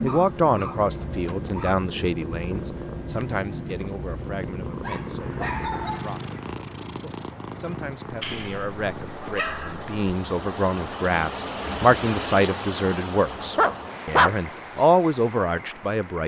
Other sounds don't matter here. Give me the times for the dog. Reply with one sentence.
You can hear the dog from 0.1 to 1.8 s, from 4.8 to 6.5 s, from 8.2 to 9.9 s and from 13.6 to 14.3 s.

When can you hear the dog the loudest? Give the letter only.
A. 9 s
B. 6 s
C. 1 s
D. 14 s
D.